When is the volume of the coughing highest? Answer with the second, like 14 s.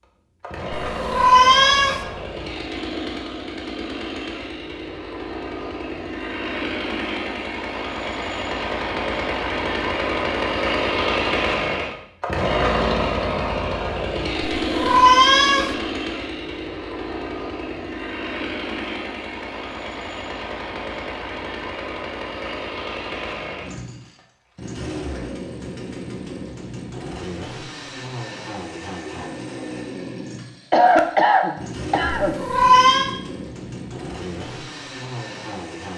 31 s.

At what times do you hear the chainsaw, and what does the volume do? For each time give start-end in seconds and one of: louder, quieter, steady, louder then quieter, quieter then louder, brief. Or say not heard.
0.0-35.9 louder then quieter.